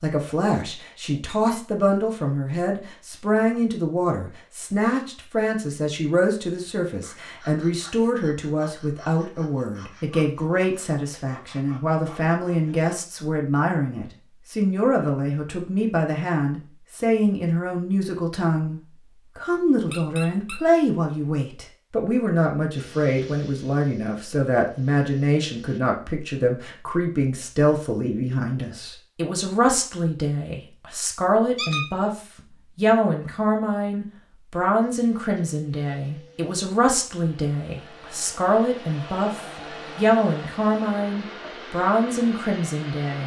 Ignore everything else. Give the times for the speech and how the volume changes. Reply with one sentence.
The speech can be heard from 0.0 to 43.2 s, at a steady volume.